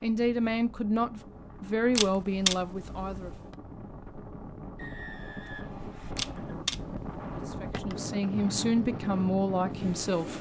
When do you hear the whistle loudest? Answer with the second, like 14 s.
5 s.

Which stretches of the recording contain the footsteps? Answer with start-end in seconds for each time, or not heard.
not heard.